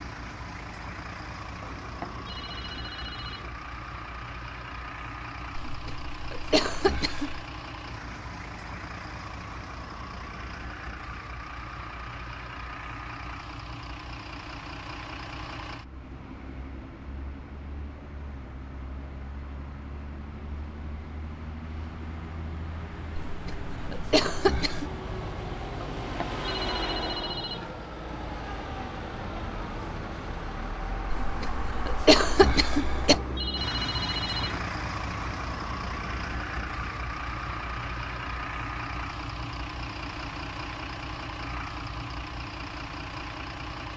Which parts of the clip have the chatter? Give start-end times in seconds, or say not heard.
not heard.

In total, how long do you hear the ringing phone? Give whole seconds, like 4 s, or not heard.
6 s.